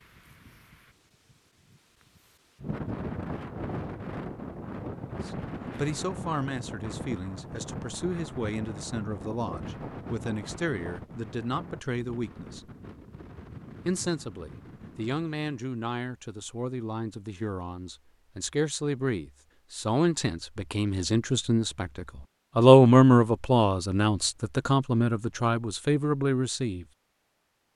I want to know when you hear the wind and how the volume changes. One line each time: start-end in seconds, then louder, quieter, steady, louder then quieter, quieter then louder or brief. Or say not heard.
0.1-0.8 brief
1.7-15.4 quieter.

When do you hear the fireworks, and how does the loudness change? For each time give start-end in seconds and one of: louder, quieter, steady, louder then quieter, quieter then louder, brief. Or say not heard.
not heard.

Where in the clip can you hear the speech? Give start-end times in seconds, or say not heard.
5.2-12.7, 13.8-26.9.